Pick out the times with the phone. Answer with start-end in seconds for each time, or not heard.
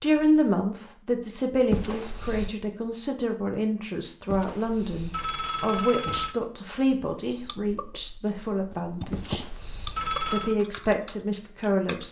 1.7-2.5, 4.2-6.3, 9.1-10.6.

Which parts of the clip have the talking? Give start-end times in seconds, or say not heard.
0.0-9.4, 10.3-12.0.